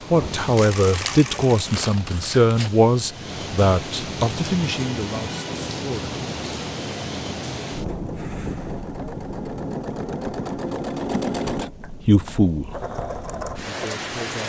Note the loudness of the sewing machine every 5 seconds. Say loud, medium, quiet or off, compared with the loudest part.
medium, medium, loud.